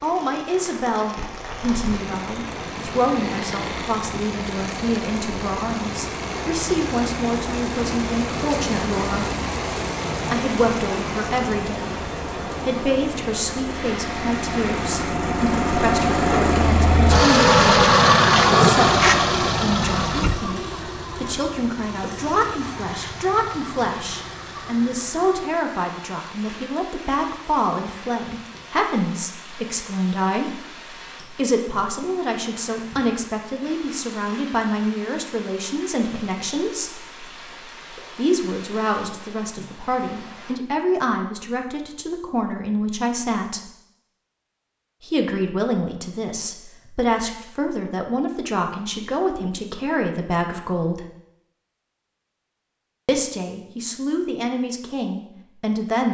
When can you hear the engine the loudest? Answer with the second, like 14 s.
18 s.